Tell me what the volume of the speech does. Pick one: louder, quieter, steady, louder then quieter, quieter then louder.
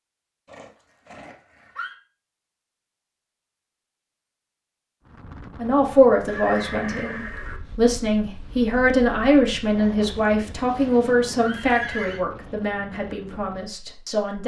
quieter.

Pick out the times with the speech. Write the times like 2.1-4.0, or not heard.
5.5-14.4.